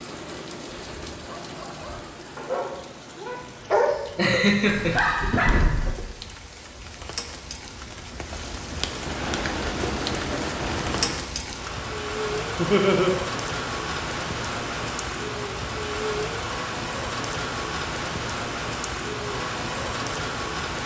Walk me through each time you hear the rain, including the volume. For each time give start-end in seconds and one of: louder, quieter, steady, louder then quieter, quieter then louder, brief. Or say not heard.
0.0-20.8 louder.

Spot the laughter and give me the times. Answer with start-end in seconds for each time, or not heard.
3.9-5.0, 12.6-13.1.